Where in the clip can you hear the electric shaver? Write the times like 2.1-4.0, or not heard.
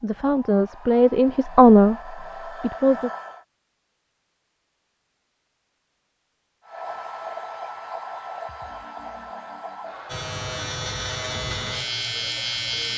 10.1-12.9.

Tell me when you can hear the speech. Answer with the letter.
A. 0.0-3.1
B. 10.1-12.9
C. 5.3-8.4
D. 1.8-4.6
A.